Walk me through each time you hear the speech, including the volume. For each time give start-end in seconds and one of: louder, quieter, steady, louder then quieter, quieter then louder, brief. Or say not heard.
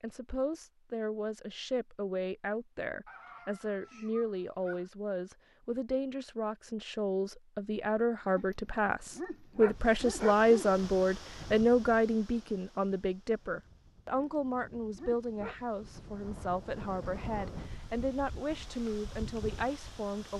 0.0-20.3 louder then quieter.